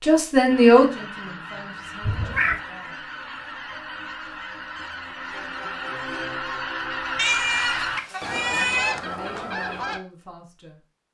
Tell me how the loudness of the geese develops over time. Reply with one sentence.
The volume of the geese goes up.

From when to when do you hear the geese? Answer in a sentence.
You can hear the geese from 0.5 to 10.0 s.